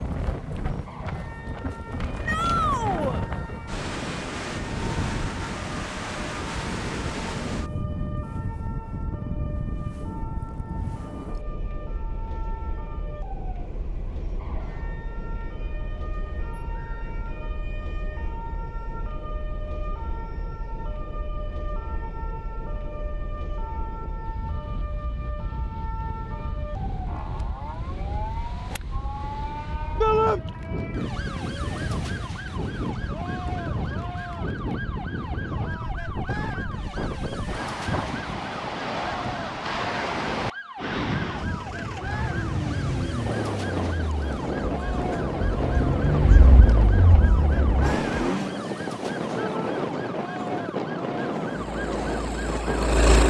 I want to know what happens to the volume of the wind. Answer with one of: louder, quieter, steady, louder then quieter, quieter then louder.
quieter then louder.